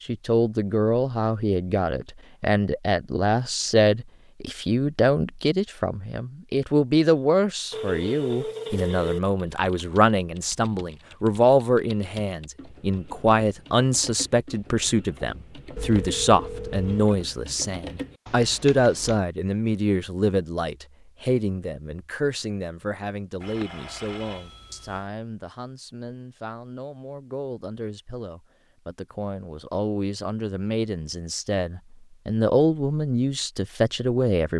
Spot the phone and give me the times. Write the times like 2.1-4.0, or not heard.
7.7-9.2, 15.8-17.1, 23.4-25.1.